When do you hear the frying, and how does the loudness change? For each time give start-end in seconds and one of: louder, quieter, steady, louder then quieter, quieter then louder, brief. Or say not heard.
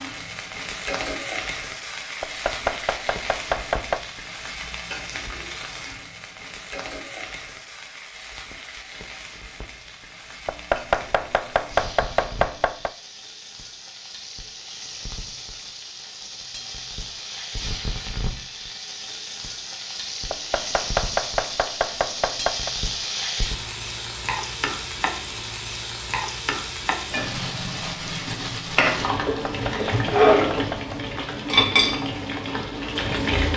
0.0-33.5 quieter then louder.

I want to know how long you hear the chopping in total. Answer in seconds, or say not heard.
8 s.